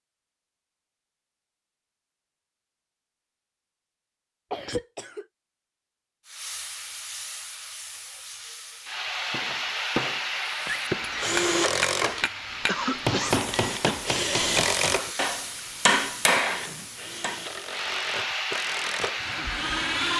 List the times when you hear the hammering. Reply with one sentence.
You can hear the hammering from 9.3 to 17.4 s.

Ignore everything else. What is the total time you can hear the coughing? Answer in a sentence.
The coughing can be heard for 3 seconds in total.